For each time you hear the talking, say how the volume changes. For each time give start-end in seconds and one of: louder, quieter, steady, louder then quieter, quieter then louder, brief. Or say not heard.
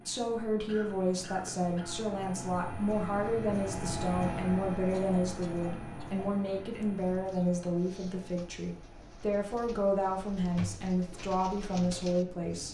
0.1-12.6 steady.